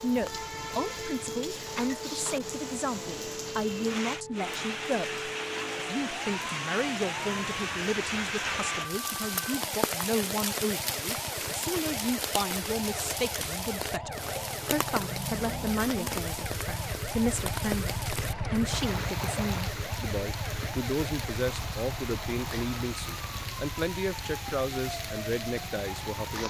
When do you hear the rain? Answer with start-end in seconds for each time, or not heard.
0.0-26.4.